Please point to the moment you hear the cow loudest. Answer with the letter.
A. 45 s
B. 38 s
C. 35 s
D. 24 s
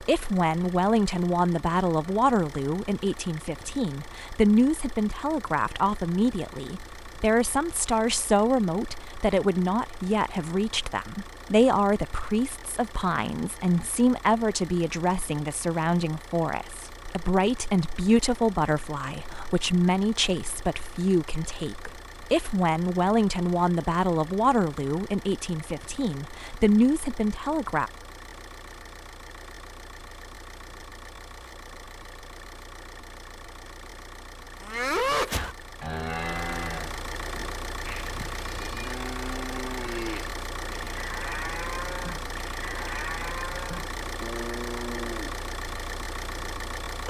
C.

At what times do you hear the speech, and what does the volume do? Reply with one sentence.
The speech can be heard from 0.0 to 27.9 s, at a steady volume.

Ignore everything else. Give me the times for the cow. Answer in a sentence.
You can hear the cow from 34.6 to 45.4 s.